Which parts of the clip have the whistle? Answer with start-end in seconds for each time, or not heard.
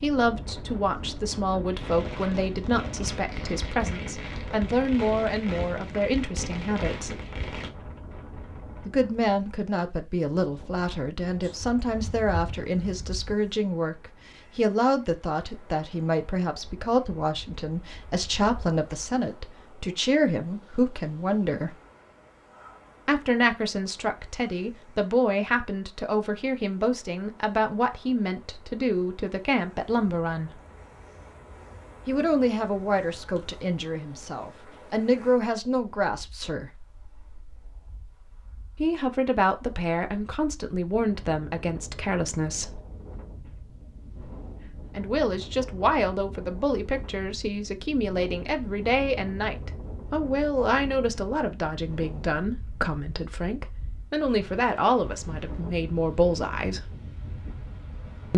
not heard.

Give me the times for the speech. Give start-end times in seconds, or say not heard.
0.0-7.1, 8.8-21.8, 23.1-30.6, 32.0-36.7, 38.8-42.8, 45.0-56.8.